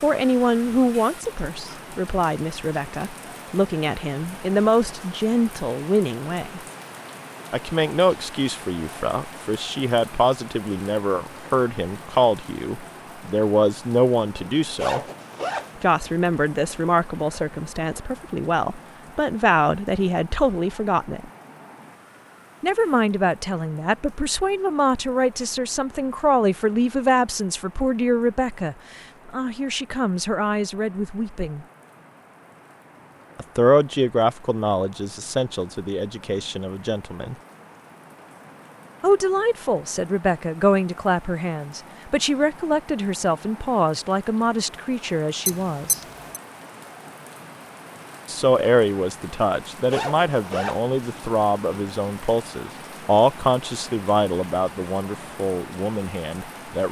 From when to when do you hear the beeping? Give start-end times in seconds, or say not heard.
45.5-46.4.